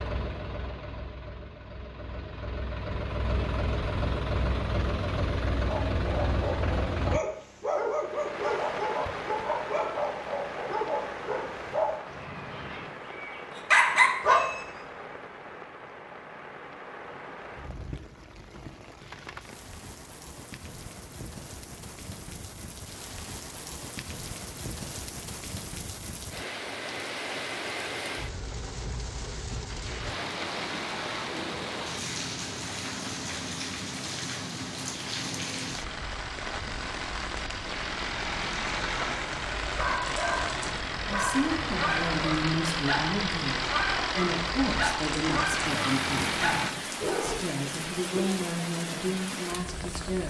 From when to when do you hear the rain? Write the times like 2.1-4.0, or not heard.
8.0-50.2.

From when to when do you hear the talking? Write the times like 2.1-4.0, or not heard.
41.0-50.2.